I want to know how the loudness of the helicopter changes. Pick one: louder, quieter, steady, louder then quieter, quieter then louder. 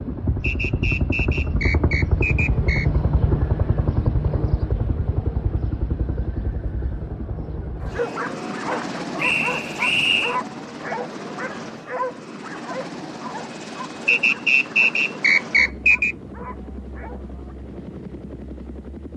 quieter.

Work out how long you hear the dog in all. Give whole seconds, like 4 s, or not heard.
10 s.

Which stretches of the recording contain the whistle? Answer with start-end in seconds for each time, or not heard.
0.4-2.9, 9.2-10.3, 14.1-16.1.